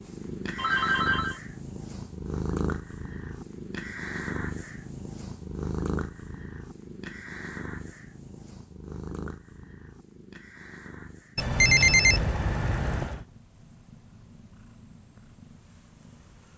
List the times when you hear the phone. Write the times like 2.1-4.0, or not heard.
0.6-1.4, 11.3-13.2.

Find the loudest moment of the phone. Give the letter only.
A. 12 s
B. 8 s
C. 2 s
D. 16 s
A.